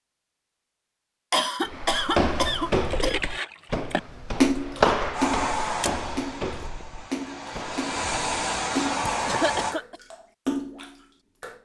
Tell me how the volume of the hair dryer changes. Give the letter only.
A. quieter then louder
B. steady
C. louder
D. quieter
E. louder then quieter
A.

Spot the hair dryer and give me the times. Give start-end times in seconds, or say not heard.
5.1-9.8.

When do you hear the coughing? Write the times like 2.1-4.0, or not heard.
1.3-3.2, 9.1-10.0.